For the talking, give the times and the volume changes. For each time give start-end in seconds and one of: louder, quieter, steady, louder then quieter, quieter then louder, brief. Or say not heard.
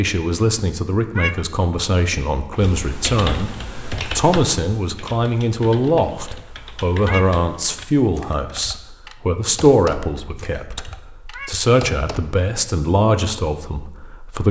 0.0-14.4 steady.